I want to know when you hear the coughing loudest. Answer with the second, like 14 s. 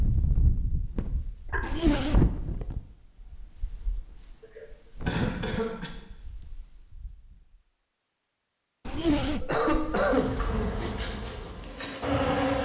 10 s.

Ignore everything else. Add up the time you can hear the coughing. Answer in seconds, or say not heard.
3 s.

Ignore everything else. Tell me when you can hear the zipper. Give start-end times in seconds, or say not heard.
1.6-2.4, 8.8-10.0.